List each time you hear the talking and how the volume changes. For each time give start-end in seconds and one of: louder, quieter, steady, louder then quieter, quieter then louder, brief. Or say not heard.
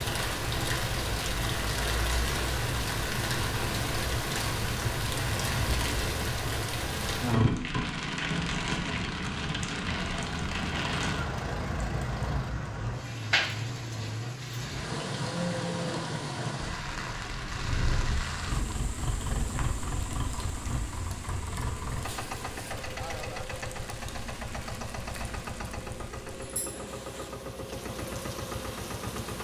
not heard.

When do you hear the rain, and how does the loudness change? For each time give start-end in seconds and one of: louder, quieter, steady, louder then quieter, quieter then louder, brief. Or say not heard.
0.0-29.3 quieter.